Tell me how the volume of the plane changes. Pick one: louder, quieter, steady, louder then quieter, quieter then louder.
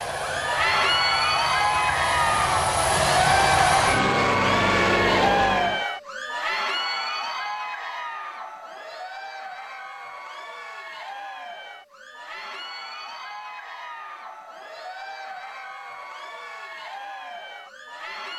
louder.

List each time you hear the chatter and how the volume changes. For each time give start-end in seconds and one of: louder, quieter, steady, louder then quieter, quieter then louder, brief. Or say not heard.
0.1-18.3 quieter.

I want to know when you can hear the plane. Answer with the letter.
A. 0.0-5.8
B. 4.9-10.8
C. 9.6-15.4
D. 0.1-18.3
A.